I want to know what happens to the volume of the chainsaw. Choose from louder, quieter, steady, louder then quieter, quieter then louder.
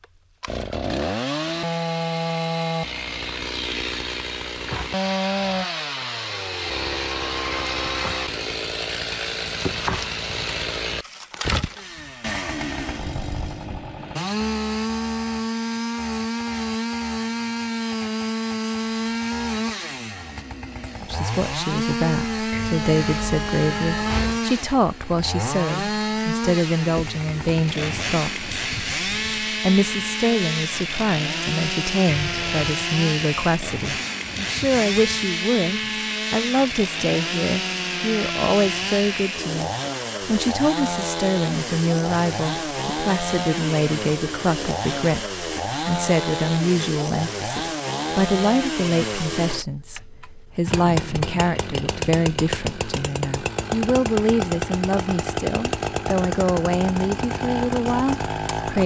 steady.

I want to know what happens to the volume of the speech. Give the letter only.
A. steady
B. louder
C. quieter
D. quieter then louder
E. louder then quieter
A.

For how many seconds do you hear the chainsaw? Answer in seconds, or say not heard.
59 s.